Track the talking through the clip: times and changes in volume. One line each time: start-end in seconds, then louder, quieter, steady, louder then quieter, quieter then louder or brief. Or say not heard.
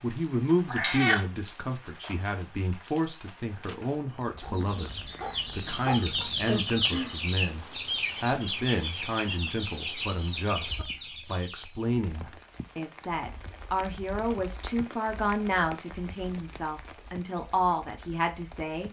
0.0-18.8 steady.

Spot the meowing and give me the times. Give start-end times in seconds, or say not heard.
0.7-1.2.